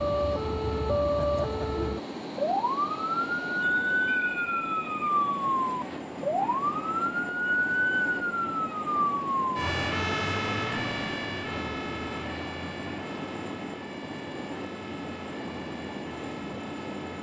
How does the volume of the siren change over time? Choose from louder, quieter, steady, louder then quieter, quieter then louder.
quieter.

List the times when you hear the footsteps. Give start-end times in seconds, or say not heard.
not heard.